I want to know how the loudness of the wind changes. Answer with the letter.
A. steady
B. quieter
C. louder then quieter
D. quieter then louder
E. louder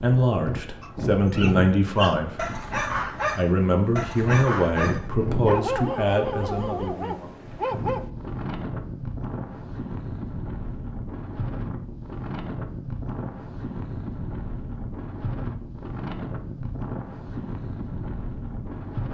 A.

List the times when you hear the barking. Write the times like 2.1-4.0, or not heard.
0.8-8.1.